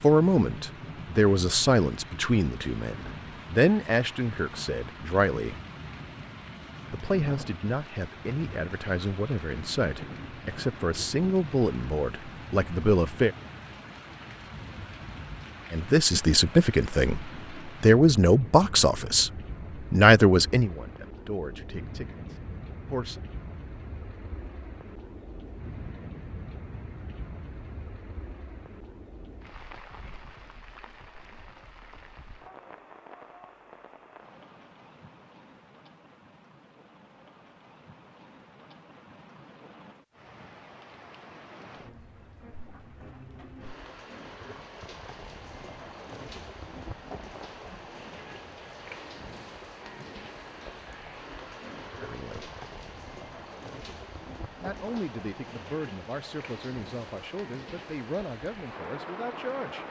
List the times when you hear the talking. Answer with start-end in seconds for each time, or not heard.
0.0-5.5, 6.9-13.3, 15.7-23.2, 52.0-52.5, 54.6-59.8.